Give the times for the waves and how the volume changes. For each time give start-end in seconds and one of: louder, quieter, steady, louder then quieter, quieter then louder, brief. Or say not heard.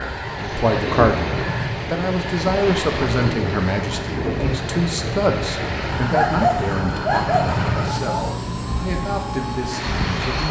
0.0-10.3 quieter.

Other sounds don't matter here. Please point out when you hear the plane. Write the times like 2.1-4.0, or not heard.
0.0-10.4.